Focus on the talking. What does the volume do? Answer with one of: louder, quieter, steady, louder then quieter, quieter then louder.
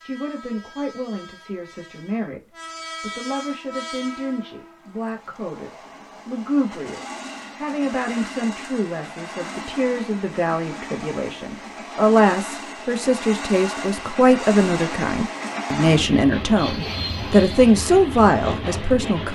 louder.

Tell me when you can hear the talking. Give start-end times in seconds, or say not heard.
0.0-19.3.